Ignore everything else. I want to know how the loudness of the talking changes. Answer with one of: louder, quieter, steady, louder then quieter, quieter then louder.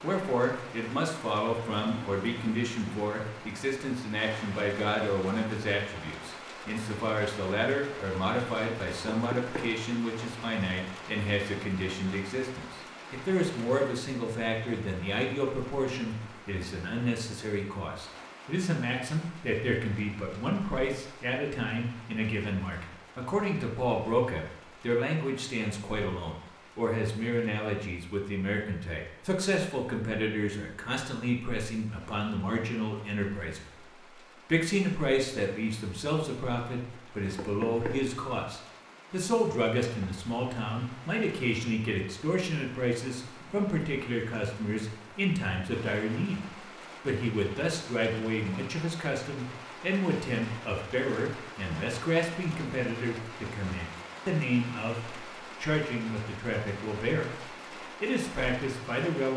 steady.